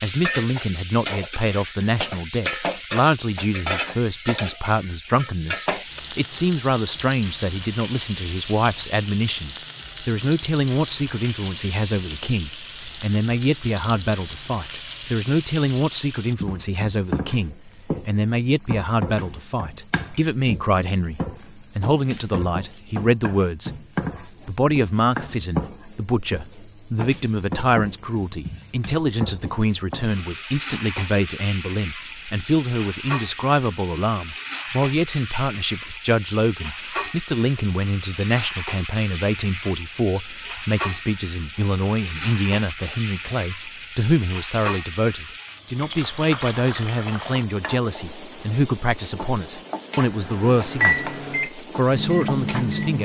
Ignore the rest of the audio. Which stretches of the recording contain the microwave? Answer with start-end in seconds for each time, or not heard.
50.0-53.0.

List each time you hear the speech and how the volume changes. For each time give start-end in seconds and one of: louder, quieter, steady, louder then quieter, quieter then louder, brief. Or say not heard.
0.0-53.0 steady.